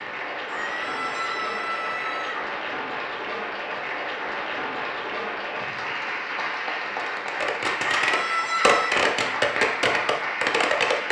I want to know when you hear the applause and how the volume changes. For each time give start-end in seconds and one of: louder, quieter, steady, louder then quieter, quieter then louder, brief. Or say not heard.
0.0-11.0 steady.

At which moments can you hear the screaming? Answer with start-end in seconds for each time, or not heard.
0.5-2.4, 7.8-8.9.